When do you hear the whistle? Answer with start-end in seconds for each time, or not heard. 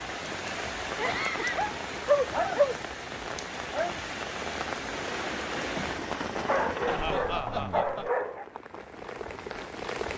not heard.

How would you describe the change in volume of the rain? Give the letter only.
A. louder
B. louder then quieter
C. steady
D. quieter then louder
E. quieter
E.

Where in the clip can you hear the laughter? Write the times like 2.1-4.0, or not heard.
0.9-1.8, 6.8-8.1.